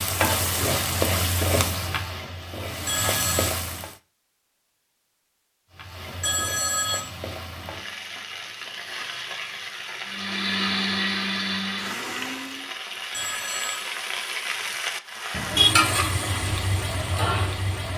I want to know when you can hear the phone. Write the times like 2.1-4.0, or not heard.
2.9-3.5, 6.2-7.0, 13.1-13.9.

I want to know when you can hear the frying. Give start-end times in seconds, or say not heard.
0.0-4.0, 5.7-17.9.